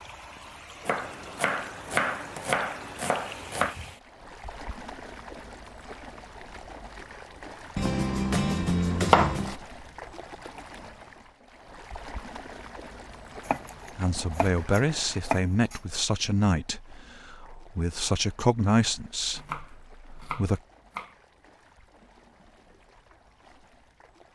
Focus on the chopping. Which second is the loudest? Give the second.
9 s.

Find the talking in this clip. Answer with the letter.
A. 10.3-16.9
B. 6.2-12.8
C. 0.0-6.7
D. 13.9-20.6
D.